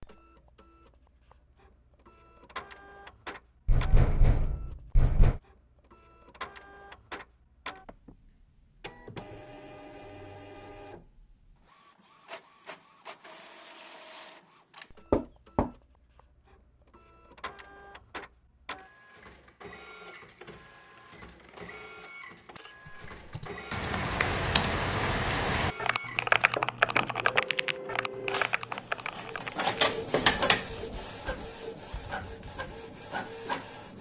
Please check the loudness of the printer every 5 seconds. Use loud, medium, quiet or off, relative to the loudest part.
quiet, quiet, quiet, quiet, quiet, loud, loud.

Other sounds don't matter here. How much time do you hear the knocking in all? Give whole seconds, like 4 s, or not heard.
3 s.